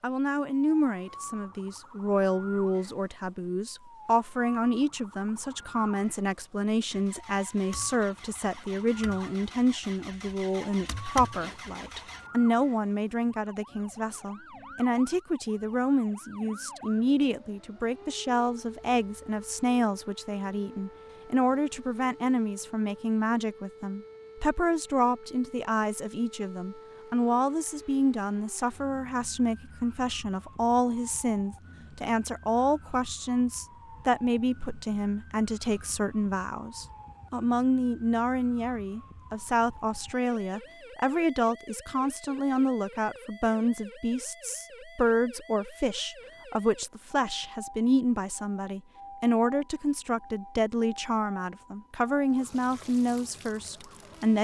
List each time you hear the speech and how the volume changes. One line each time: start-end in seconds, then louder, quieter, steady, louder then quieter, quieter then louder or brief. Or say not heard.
0.0-54.4 steady.